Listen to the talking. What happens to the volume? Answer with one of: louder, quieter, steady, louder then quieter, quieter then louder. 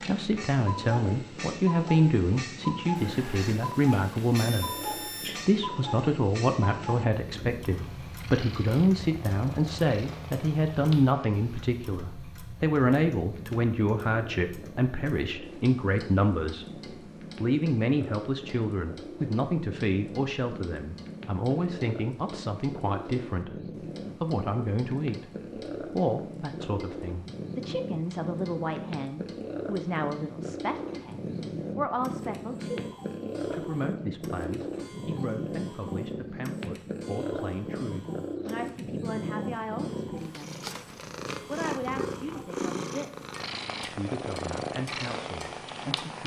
quieter.